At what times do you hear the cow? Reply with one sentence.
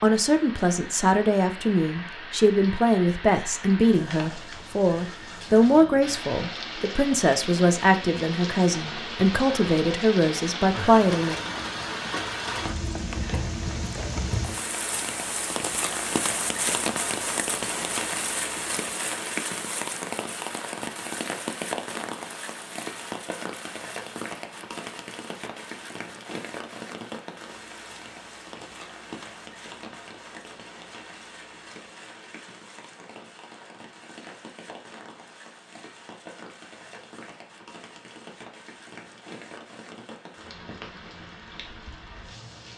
The cow can't be heard in this clip.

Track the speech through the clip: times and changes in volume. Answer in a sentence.
The speech can be heard from 0.0 to 11.4 s, at a steady volume.